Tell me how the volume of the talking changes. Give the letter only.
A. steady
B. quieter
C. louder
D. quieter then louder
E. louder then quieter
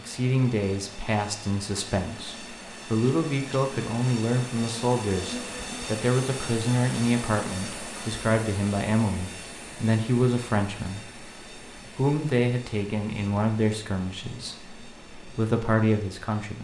A.